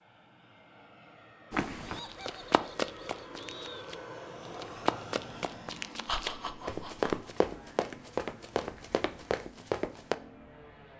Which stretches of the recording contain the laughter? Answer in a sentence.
The laughter can be heard from 1.8 to 3.9 s and from 6.0 to 7.3 s.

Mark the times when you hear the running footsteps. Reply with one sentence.
You can hear the running footsteps from 1.5 to 10.2 s.